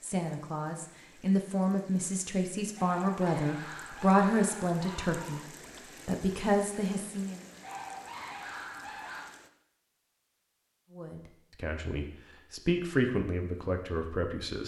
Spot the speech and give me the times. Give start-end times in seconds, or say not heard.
0.0-5.5, 6.0-7.5, 10.9-14.6.